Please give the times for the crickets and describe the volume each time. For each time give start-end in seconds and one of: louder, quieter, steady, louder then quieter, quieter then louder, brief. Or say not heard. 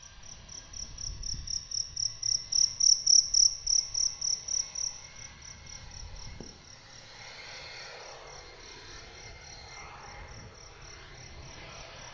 0.0-12.0 louder then quieter.